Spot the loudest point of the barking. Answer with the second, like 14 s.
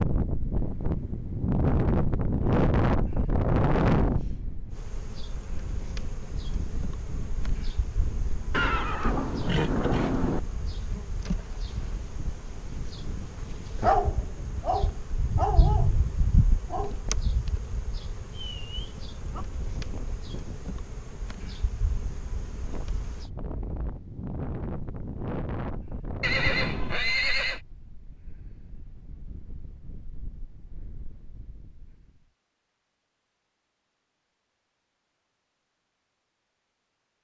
14 s.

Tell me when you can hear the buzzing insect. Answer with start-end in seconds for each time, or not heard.
4.8-23.2.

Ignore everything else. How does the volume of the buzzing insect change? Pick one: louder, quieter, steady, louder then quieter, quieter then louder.
louder then quieter.